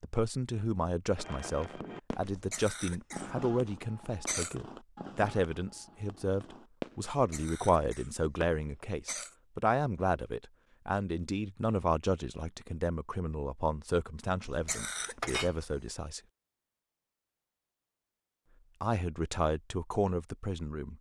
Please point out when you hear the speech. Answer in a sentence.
You can hear the speech from 0.0 to 16.2 s and from 18.8 to 20.9 s.